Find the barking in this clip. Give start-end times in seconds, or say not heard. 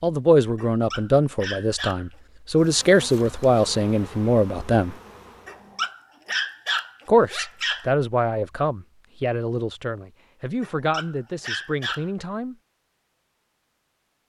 0.6-2.1, 5.5-7.9, 10.6-12.1.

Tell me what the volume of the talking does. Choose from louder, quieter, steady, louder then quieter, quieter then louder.
quieter.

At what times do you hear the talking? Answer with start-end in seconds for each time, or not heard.
0.0-5.0, 7.0-12.6.